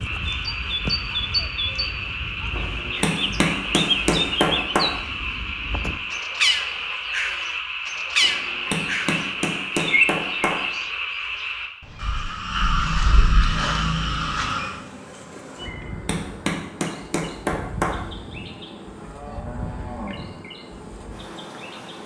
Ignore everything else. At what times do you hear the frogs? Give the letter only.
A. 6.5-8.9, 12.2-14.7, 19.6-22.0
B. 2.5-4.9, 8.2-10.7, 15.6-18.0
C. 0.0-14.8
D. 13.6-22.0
C.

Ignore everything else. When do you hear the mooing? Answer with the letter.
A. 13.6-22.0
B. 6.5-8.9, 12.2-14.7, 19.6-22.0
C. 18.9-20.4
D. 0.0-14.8
C.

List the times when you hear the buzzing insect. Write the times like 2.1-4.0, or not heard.
13.6-22.0.